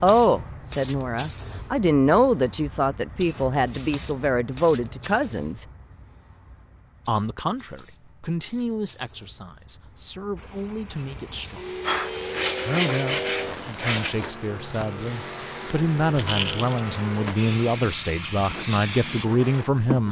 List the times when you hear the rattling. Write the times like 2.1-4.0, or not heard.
16.1-16.8.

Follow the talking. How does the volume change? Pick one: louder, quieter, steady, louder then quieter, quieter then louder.
quieter then louder.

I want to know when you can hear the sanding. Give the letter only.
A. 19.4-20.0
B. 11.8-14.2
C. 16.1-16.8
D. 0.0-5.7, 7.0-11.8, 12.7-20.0
B.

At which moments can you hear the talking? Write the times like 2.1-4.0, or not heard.
0.0-5.7, 7.0-11.8, 12.7-20.0.